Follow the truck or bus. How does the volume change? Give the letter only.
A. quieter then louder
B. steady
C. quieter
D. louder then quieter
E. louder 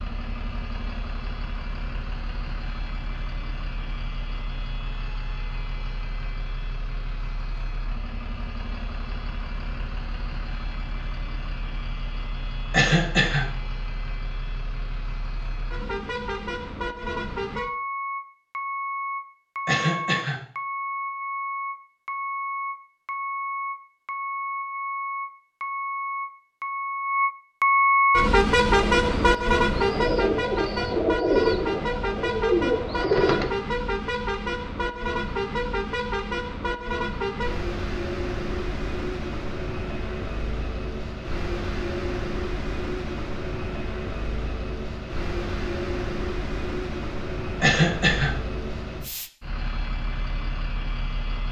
D.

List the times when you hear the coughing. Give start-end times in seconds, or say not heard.
12.7-13.4, 19.6-20.4, 47.6-48.4.